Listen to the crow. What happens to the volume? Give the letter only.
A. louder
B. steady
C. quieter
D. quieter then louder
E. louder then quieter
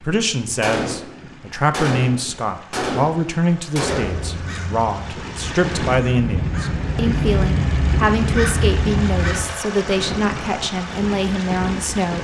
A.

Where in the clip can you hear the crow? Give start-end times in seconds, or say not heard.
4.0-9.5.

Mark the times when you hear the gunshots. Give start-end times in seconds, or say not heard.
0.6-4.3.